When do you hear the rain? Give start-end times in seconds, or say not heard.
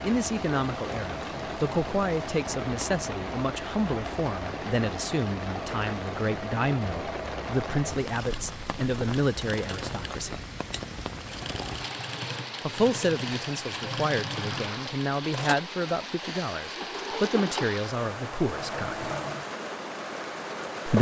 0.0-20.9.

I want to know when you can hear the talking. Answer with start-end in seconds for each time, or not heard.
0.0-10.4, 12.7-19.1.